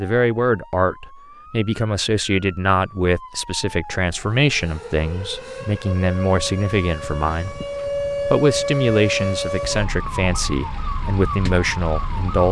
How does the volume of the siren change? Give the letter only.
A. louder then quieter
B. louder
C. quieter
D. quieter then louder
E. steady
A.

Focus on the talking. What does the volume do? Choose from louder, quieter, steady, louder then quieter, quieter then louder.
steady.